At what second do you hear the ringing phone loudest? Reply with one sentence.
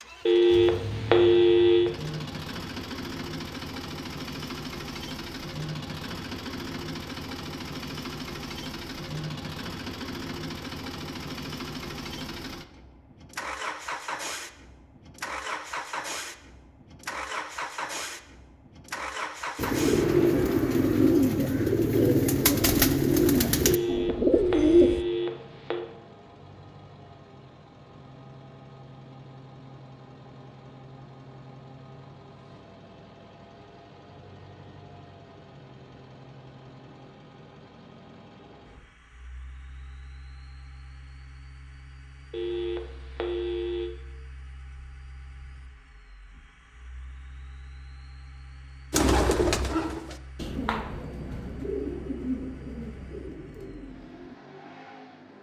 The volume of the ringing phone peaks at 1 second.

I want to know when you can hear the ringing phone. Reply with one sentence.
The ringing phone can be heard from 0.2 to 1.9 s, from 23.6 to 25.9 s and from 42.3 to 43.9 s.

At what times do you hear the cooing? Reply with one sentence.
You can hear the cooing from 19.6 to 25.1 s and from 48.9 to 54.4 s.